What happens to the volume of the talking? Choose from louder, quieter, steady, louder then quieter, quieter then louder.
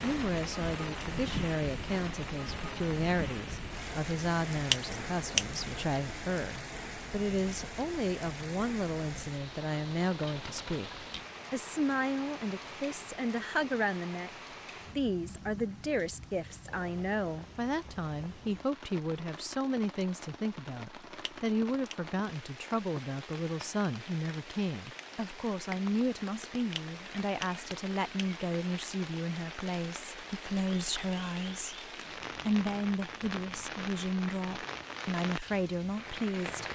steady.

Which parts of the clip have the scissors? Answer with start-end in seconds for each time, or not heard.
4.6-5.7, 21.2-21.9, 26.6-28.3.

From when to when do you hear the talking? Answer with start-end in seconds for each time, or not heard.
0.0-36.6.